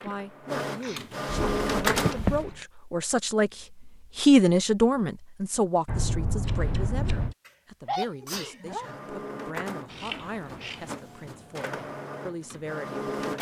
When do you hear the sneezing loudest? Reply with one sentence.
The loudest moment of the sneezing is at 8 seconds.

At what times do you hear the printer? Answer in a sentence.
The printer can be heard from 0.0 to 2.4 s and from 8.7 to 13.3 s.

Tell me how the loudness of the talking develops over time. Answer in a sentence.
The volume of the talking goes up, then down.